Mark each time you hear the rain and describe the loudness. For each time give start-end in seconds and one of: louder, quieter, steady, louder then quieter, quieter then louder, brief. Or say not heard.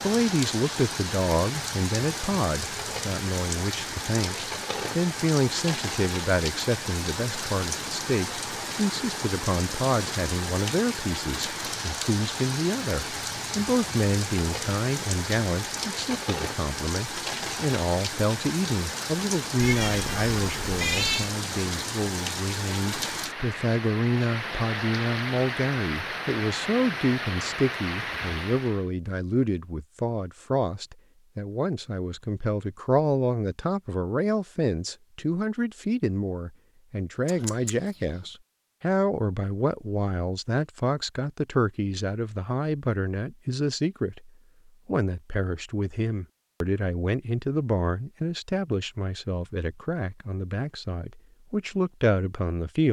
0.0-28.9 steady.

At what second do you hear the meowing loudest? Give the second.
21 s.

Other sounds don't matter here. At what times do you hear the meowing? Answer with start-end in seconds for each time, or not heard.
19.6-21.4, 37.2-38.2.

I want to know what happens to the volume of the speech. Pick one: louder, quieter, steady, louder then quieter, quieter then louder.
steady.